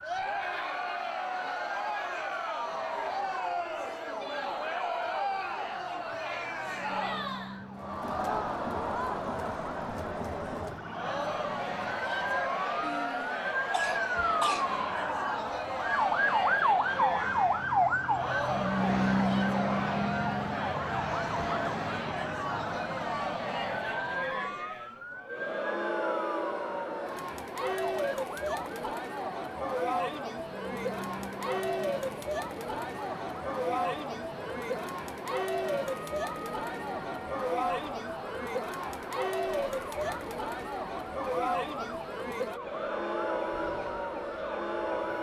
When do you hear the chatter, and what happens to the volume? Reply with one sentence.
You can hear the chatter from 0.0 to 45.1 s, at a steady volume.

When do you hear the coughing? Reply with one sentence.
The coughing can be heard from 12.8 to 14.7 s.